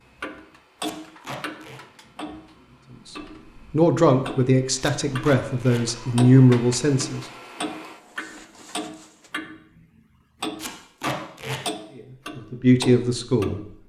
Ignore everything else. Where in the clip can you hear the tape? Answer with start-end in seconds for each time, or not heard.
0.8-1.8, 4.8-5.8, 10.6-11.6.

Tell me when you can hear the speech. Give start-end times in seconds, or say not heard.
3.7-7.2, 11.9-13.6.